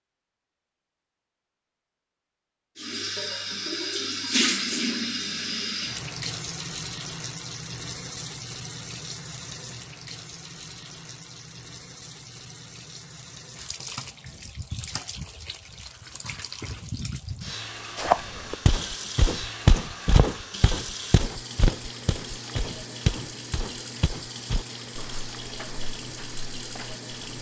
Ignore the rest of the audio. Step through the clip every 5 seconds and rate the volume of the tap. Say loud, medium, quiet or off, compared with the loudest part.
loud, medium, quiet, medium, medium, medium.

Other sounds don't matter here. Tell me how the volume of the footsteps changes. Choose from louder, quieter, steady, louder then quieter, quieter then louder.
quieter.